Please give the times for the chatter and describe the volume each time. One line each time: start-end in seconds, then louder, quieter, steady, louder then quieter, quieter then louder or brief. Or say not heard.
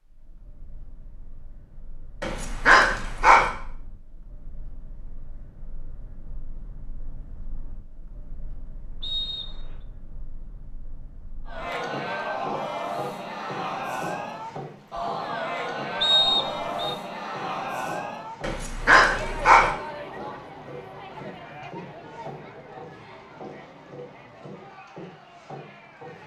11.4-26.2 quieter.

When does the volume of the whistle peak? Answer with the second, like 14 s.
16 s.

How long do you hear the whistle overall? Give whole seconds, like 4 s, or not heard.
2 s.